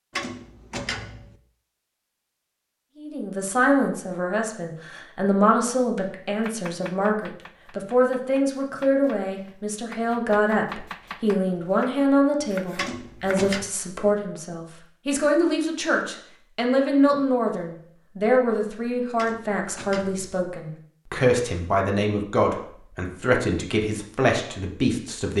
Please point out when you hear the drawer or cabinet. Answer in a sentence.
The drawer or cabinet can be heard from 0.1 to 1.4 s, from 12.8 to 13.7 s and from 19.1 to 20.4 s.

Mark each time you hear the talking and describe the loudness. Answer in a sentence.
The talking can be heard from 3.0 to 25.3 s, at a steady volume.